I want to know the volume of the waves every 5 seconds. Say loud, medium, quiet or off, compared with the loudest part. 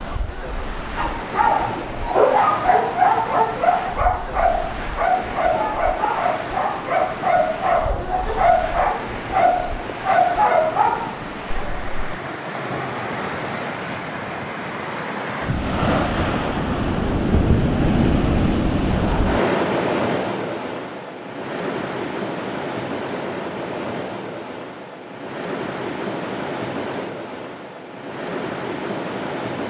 medium, medium, medium, loud, medium, medium.